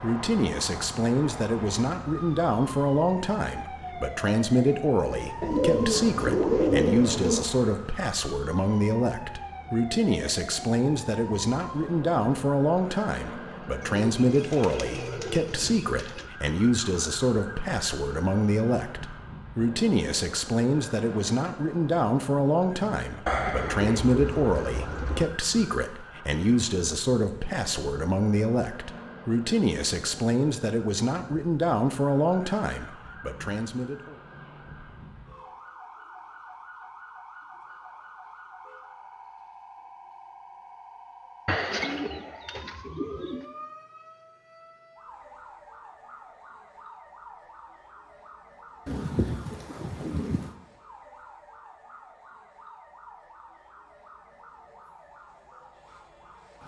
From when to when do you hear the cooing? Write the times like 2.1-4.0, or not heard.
5.4-7.5, 13.8-16.2, 23.2-25.2, 41.5-43.5, 48.9-50.5.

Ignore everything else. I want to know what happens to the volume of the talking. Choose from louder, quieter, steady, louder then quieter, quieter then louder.
steady.